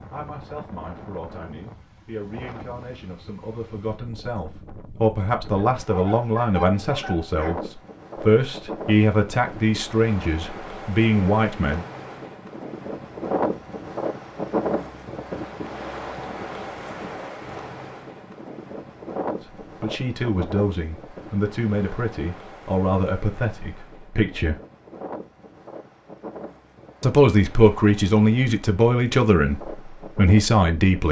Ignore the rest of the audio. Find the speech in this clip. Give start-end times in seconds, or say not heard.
0.1-11.8, 19.8-24.6, 27.0-31.0.